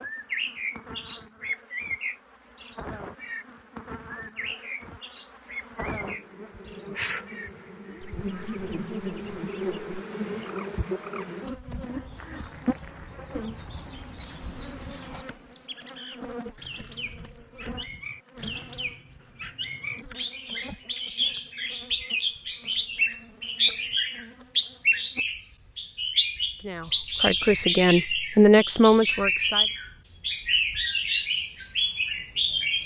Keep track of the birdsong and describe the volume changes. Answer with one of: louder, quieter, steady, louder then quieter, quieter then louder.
quieter then louder.